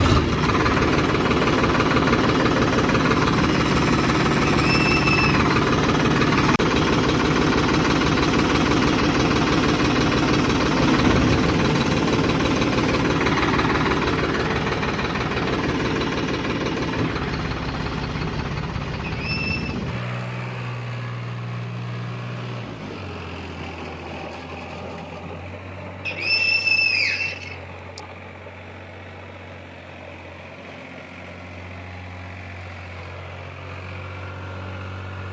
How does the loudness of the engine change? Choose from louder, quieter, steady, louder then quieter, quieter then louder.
quieter.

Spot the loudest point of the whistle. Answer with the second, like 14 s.
27 s.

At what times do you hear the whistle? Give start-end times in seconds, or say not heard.
4.7-5.4, 19.0-19.8, 26.1-28.0.